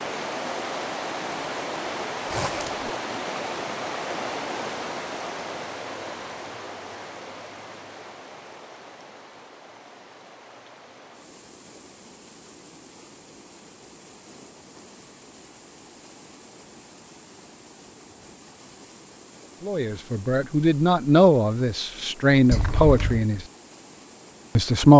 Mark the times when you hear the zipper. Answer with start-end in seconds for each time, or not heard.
2.3-2.9, 22.5-23.2.